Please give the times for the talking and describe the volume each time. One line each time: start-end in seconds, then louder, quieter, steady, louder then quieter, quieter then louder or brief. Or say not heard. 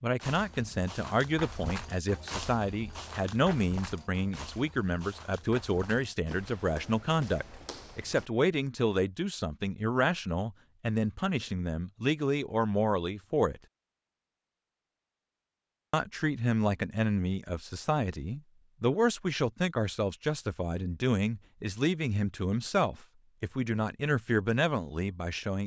0.0-13.6 steady
15.9-25.6 steady.